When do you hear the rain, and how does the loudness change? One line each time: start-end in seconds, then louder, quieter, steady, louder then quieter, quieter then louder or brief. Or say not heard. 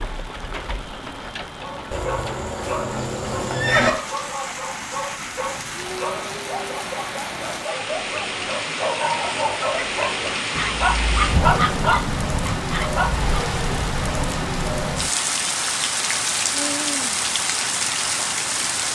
0.0-18.9 louder.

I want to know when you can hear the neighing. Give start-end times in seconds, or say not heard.
1.9-3.9.